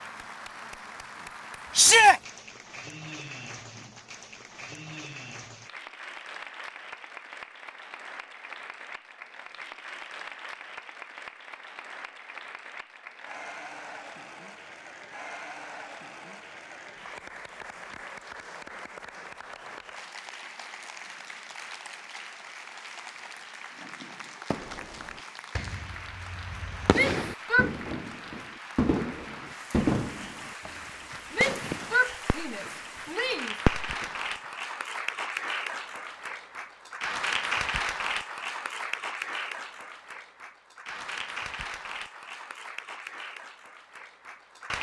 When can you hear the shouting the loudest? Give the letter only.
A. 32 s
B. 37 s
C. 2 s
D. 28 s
C.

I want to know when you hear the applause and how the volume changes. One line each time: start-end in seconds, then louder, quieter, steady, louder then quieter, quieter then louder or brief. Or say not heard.
0.0-44.7 louder.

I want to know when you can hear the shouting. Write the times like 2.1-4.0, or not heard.
1.8-2.2, 26.9-27.7, 31.3-33.5.